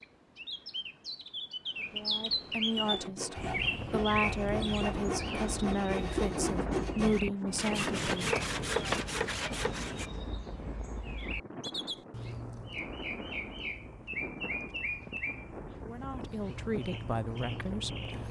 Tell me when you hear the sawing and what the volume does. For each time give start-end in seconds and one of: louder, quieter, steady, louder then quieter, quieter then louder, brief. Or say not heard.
2.8-10.1 louder.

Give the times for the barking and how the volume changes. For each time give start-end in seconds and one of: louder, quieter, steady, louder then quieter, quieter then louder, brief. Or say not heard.
not heard.